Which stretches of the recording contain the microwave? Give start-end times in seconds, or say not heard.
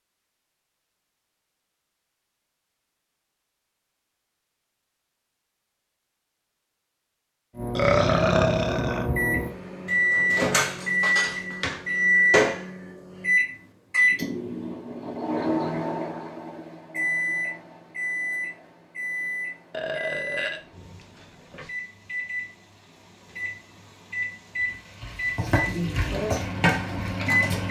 7.5-27.6.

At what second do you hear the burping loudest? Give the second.
8 s.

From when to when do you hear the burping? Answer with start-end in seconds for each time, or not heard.
7.8-9.1, 19.7-21.7.